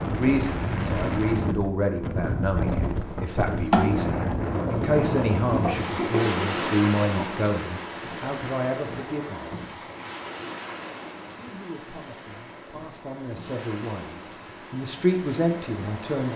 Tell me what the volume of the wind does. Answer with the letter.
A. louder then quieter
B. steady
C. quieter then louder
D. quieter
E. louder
D.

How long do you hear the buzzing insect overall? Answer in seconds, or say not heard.
4 s.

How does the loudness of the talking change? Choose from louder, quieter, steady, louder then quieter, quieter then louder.
quieter then louder.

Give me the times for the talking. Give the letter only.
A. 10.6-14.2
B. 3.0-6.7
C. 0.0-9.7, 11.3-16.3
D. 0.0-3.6
C.